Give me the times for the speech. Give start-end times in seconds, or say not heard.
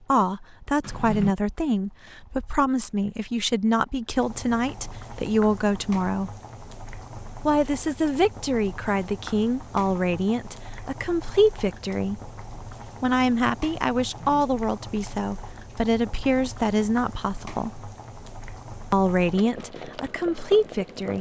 0.1-6.3, 7.5-12.2, 13.0-17.9, 18.9-21.1.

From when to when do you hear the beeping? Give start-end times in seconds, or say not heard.
not heard.